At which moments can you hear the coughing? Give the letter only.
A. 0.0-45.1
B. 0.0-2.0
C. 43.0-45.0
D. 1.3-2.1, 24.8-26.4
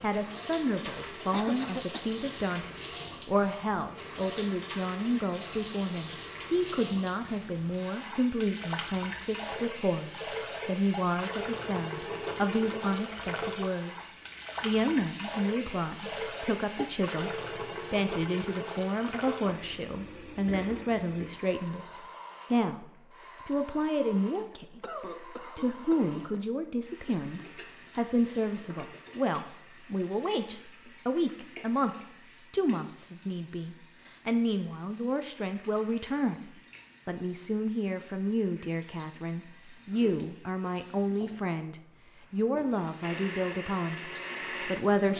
D.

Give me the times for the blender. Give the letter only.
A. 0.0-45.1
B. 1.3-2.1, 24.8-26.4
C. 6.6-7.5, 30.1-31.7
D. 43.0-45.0
D.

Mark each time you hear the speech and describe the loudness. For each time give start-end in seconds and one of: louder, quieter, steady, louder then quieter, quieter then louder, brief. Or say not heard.
0.0-45.1 steady.